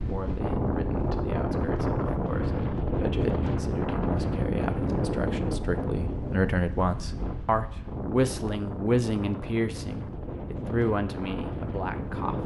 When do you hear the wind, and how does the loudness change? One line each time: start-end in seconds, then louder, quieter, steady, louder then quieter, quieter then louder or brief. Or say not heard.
0.0-12.4 quieter.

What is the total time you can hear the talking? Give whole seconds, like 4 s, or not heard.
12 s.